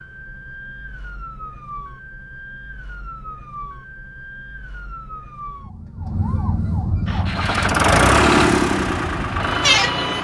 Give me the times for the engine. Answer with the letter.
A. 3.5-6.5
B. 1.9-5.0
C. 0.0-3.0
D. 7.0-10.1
D.